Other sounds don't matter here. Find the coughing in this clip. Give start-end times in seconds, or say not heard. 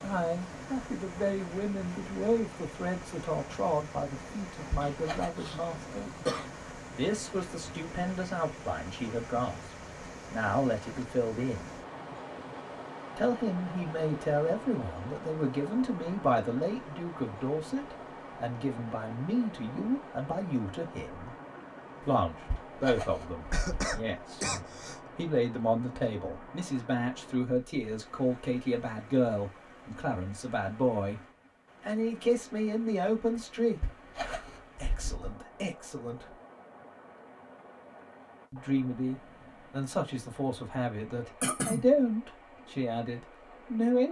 4.8-6.5, 23.5-25.0, 41.4-41.9.